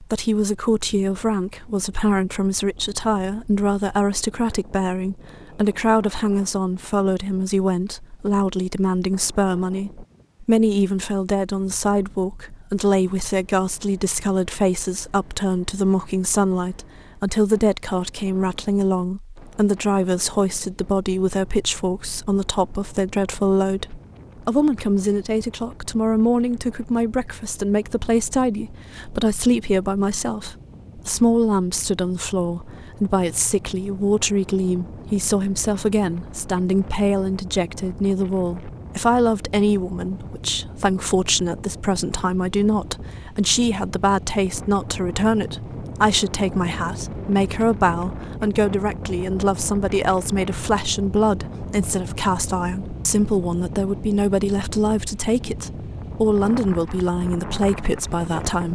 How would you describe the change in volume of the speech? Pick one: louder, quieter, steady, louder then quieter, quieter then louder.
steady.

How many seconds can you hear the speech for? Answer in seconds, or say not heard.
59 s.